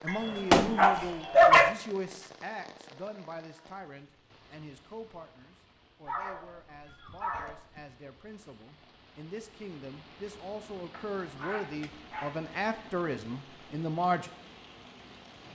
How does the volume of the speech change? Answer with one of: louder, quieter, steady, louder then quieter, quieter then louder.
quieter then louder.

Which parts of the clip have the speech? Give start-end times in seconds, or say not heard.
0.0-14.3.